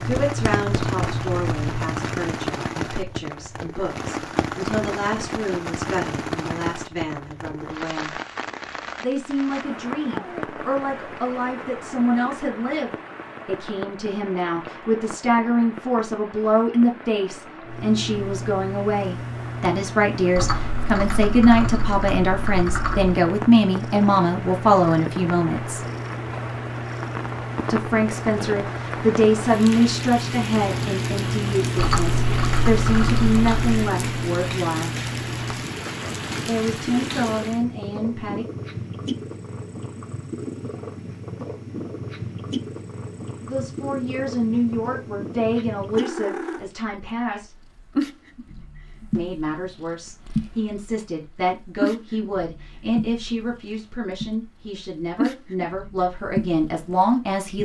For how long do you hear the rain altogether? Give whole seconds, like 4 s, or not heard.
38 s.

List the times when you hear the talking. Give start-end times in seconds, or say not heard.
0.0-8.2, 9.0-25.8, 27.7-34.9, 36.5-38.5, 43.5-47.5, 49.1-57.5.